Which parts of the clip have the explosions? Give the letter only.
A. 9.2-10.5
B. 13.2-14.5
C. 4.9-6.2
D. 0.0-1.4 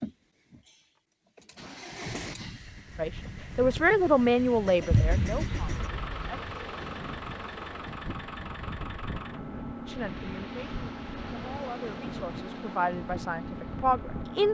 C.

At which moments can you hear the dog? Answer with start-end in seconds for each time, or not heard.
not heard.